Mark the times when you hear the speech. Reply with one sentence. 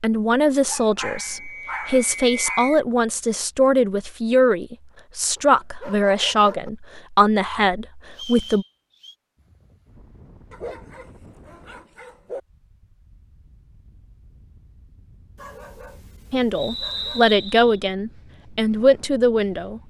You can hear the speech from 0.0 to 8.7 s and from 16.3 to 19.8 s.